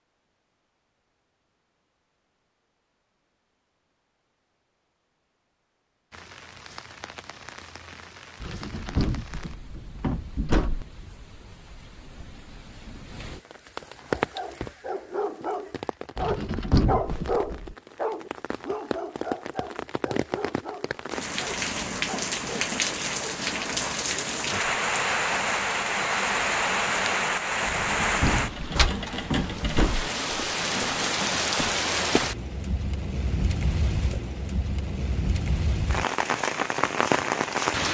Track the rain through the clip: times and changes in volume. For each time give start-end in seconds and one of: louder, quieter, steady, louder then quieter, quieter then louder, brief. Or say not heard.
6.1-37.8 louder.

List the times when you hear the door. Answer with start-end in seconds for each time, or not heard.
8.4-10.8, 16.1-17.8, 27.6-30.1.